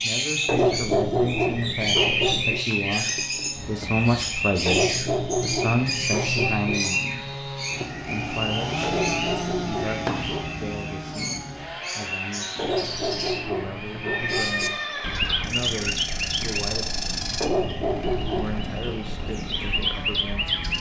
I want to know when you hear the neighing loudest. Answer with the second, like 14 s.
15 s.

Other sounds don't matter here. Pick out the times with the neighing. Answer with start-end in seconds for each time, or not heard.
3.5-4.6, 10.3-10.8, 14.0-15.9.